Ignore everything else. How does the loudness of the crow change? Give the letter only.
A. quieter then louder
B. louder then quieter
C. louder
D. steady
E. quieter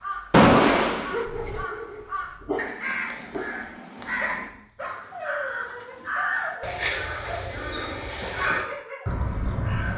C.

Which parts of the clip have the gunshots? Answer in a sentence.
You can hear the gunshots from 0.3 to 1.6 s.